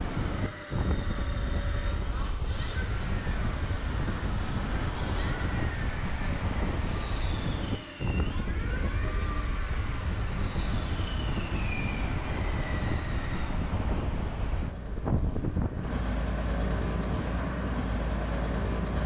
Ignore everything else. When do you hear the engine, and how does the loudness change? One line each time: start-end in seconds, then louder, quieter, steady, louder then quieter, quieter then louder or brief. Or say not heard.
0.0-19.0 louder.